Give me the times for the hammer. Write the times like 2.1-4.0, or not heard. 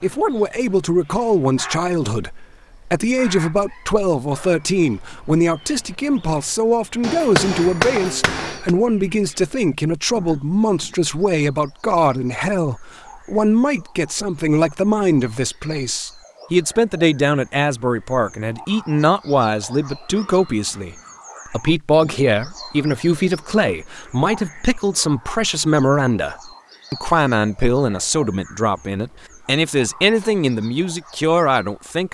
7.0-8.7.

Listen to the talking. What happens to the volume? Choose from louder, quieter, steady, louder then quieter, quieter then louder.
steady.